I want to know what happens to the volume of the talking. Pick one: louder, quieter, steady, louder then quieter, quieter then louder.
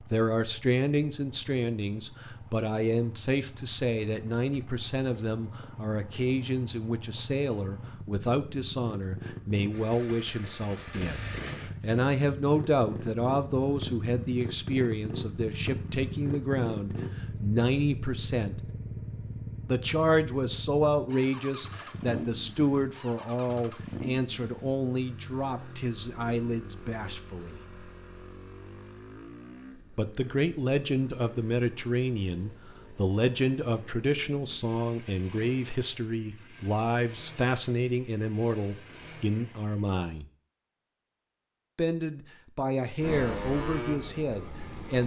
steady.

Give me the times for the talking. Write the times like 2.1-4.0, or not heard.
0.1-18.6, 19.6-27.6, 29.9-40.2, 41.8-45.0.